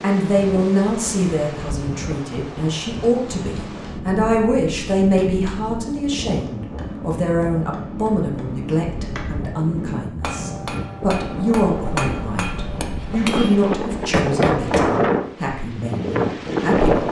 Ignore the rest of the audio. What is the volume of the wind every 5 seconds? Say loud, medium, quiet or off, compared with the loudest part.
quiet, quiet, medium, loud.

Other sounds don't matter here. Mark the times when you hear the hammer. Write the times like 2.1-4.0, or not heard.
3.1-14.9.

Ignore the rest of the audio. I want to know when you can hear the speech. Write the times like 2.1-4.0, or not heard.
0.0-17.0.